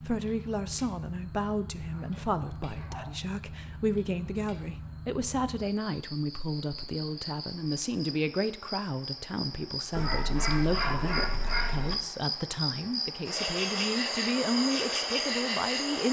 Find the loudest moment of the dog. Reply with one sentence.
The volume of the dog peaks at 11 seconds.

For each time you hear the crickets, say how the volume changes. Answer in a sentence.
You can hear the crickets from 0.0 to 16.0 s, getting louder.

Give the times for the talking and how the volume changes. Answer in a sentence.
You can hear the talking from 0.0 to 16.0 s, at a steady volume.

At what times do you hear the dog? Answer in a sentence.
The dog can be heard from 1.8 to 3.3 s and from 9.9 to 11.9 s.